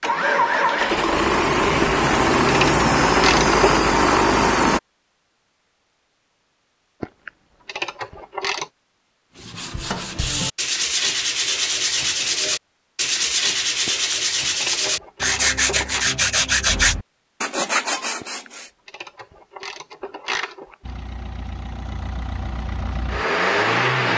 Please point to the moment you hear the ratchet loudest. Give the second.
3 s.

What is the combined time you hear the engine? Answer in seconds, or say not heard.
8 s.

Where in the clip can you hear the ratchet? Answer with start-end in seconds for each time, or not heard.
1.8-3.6, 7.0-8.7, 13.8-16.1, 18.2-20.8.